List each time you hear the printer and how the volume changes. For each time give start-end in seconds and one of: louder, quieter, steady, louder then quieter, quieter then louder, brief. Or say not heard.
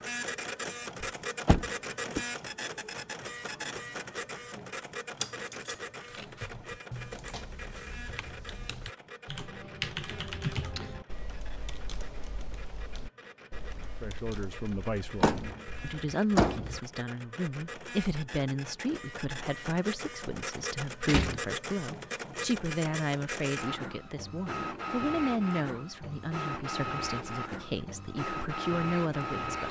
0.0-29.6 quieter then louder.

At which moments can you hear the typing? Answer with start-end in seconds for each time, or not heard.
6.2-16.0.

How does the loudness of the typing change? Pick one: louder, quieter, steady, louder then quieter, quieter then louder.
louder then quieter.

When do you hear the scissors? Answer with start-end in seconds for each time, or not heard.
5.2-6.5.